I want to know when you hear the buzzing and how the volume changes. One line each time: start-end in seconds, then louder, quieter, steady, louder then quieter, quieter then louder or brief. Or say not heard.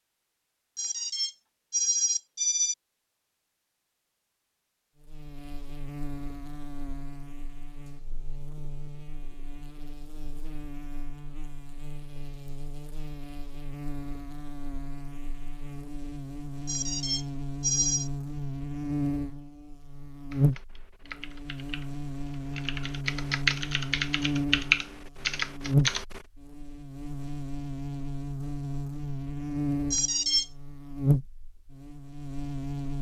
5.0-32.9 louder.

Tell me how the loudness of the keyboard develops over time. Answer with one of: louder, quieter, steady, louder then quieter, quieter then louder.
louder then quieter.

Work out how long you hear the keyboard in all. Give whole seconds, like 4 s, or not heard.
6 s.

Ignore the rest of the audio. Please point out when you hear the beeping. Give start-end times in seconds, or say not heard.
0.8-2.8, 16.6-18.1, 29.9-30.5.